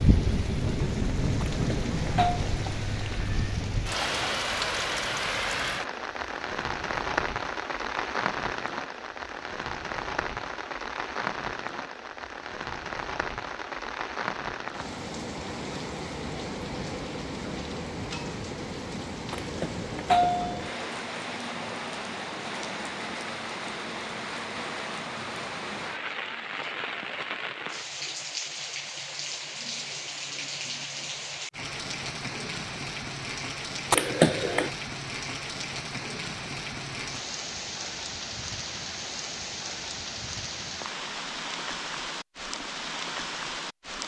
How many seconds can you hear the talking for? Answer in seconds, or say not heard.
not heard.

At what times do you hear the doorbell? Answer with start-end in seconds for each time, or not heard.
1.4-2.4, 19.3-20.9, 33.9-34.7.